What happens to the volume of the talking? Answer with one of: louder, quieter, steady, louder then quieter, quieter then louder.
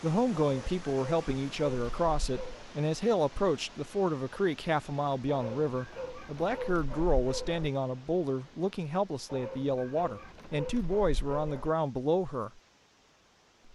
steady.